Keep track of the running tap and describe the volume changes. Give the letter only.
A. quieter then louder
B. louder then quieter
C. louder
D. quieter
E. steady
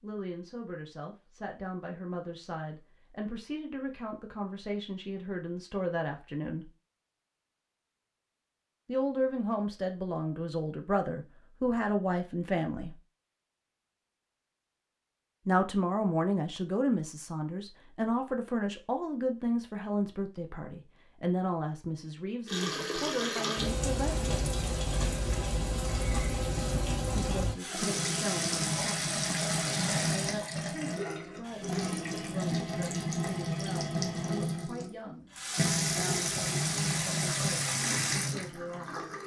E.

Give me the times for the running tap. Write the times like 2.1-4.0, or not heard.
22.4-39.2.